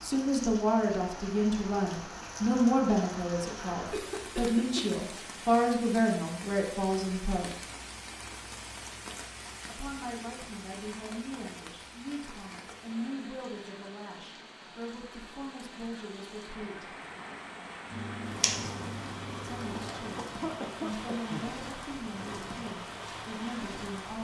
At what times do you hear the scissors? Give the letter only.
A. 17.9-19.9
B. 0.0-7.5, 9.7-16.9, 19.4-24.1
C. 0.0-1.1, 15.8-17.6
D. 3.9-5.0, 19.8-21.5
A.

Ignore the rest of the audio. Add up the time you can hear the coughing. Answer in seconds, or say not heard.
3 s.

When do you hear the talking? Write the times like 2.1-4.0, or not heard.
0.0-7.5, 9.7-16.9, 19.4-24.1.